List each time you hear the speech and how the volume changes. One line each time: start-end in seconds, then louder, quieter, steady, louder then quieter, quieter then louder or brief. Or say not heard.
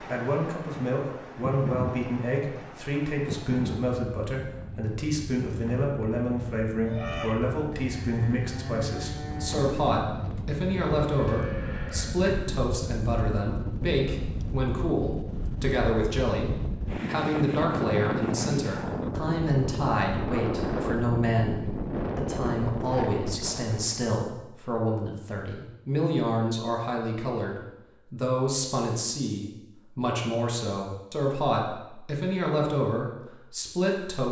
0.0-34.2 steady.